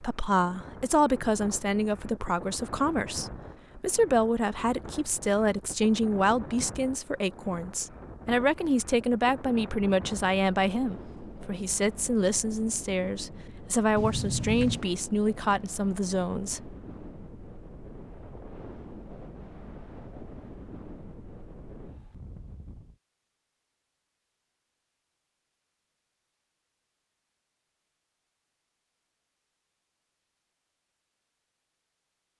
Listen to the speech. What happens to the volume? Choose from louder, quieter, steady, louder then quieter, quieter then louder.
steady.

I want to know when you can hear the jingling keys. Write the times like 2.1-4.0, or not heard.
13.9-14.8.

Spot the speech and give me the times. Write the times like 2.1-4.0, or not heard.
0.0-16.7.